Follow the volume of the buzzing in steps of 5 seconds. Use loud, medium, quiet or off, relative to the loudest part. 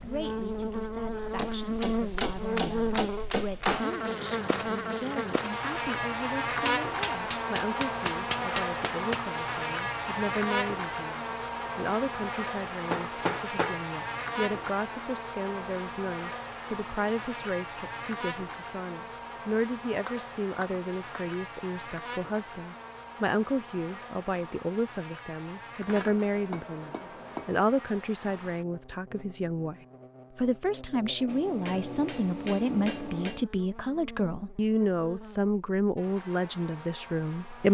loud, loud, loud, medium, medium, quiet, quiet, quiet.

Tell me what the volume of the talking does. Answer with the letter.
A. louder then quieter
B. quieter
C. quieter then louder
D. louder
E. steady
D.